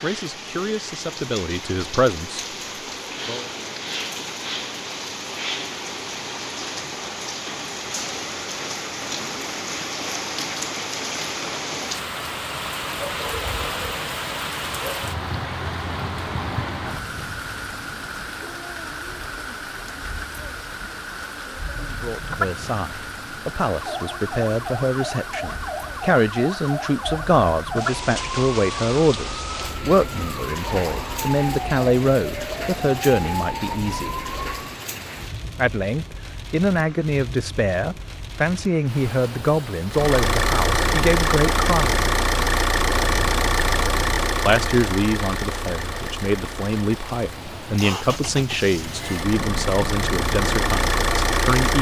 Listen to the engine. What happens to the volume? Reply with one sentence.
The volume of the engine goes down, then up.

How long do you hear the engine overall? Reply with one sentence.
The engine can be heard for 12 seconds in total.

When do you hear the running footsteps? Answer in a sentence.
You can't hear the running footsteps here.